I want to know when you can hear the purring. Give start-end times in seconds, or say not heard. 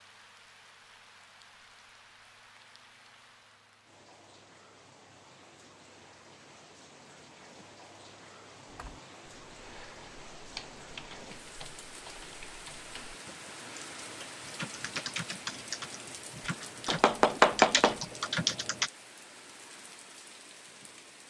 not heard.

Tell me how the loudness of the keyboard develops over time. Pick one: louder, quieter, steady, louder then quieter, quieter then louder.
louder.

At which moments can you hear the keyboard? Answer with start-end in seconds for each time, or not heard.
8.7-18.9.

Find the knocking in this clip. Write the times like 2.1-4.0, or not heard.
16.9-18.0.